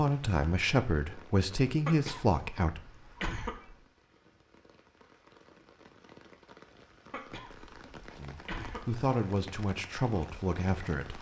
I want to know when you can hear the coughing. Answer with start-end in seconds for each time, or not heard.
1.9-3.8, 7.1-9.1.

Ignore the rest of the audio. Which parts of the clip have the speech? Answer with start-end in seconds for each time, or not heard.
0.0-2.8, 8.2-11.1.